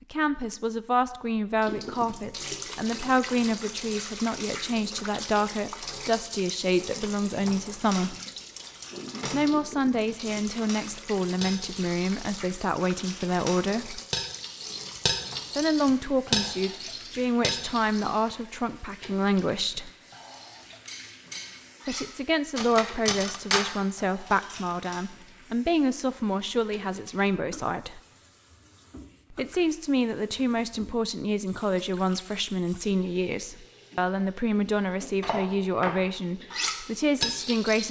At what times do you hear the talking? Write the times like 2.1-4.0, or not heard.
0.1-8.2, 9.3-14.0, 15.6-19.9, 21.9-28.0, 29.3-37.8.